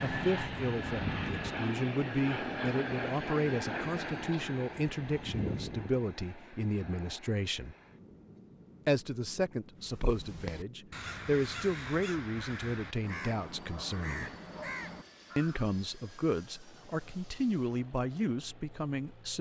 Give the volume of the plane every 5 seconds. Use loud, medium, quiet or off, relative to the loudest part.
loud, medium, quiet, quiet.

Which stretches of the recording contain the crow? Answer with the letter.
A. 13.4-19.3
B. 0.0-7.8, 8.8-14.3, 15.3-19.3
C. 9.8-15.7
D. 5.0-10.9
C.